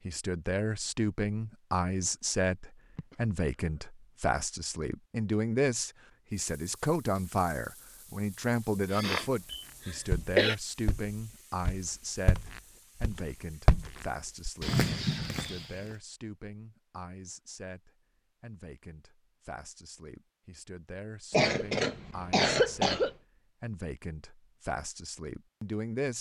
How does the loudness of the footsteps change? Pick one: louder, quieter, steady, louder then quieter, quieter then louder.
quieter then louder.